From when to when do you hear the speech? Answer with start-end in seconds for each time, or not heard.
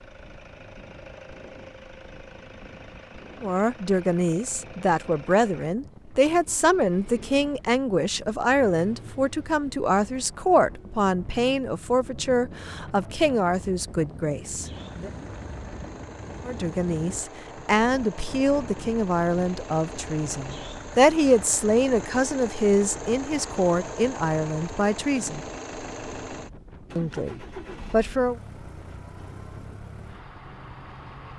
3.4-15.1, 16.4-25.4, 26.9-28.4.